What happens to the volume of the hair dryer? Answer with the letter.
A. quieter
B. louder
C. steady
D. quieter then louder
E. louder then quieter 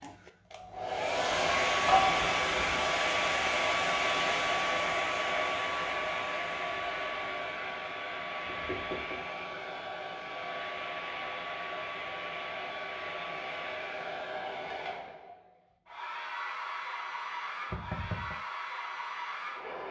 A.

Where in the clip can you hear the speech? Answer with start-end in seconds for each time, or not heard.
not heard.